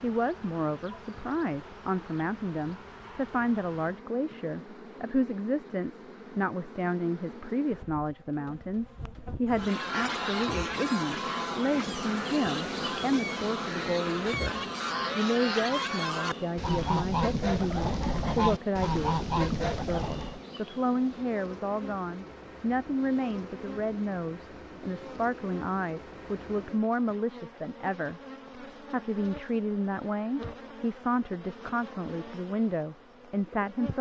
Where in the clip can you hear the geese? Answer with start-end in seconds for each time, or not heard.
9.5-20.4.